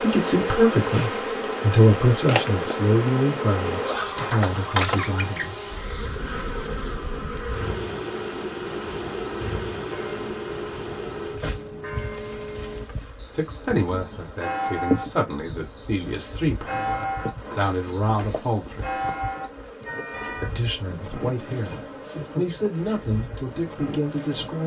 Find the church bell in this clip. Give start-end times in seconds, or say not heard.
9.9-20.5.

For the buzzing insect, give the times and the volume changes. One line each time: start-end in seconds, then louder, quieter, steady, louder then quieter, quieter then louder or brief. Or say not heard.
0.0-24.6 quieter.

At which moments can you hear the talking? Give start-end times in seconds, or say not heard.
0.0-5.7, 13.3-19.0, 20.4-24.6.